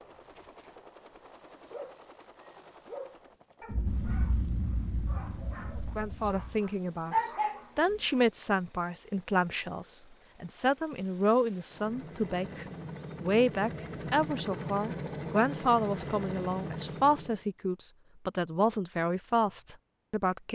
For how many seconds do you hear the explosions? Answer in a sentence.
You can hear the explosions for 3 seconds altogether.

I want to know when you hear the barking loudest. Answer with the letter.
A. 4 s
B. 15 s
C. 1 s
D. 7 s
D.